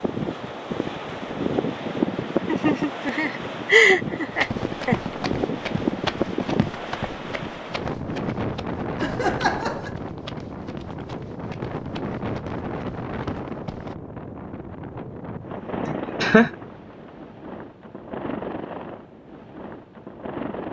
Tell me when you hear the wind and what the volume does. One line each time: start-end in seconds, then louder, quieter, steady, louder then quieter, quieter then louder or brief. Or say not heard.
0.0-20.6 quieter.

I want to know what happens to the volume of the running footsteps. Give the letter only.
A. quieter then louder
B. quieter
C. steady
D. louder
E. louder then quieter
B.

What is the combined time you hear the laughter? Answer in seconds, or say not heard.
4 s.